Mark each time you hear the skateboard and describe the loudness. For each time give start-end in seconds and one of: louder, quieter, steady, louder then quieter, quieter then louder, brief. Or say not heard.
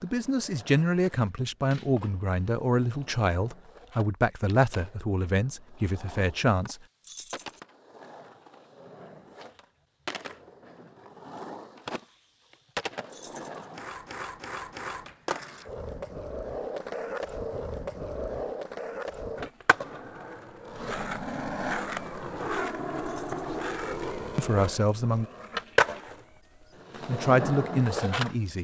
0.0-28.4 louder.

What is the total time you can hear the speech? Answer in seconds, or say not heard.
9 s.